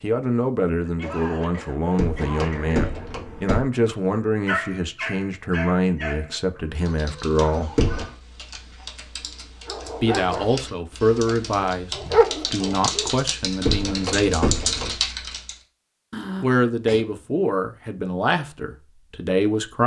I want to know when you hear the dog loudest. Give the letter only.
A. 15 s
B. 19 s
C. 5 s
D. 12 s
D.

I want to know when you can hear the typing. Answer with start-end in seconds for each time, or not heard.
6.8-15.6.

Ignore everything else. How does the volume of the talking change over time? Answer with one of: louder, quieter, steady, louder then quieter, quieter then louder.
steady.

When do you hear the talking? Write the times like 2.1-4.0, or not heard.
0.0-7.8, 10.0-14.6, 16.4-19.8.